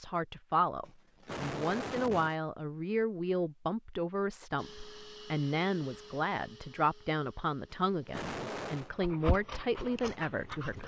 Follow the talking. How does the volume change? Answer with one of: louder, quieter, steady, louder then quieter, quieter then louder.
steady.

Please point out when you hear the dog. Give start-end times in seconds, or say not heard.
8.8-10.8.